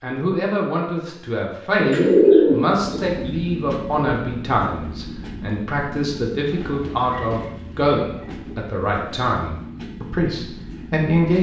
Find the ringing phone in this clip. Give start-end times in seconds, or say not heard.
not heard.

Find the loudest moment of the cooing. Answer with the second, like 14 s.
2 s.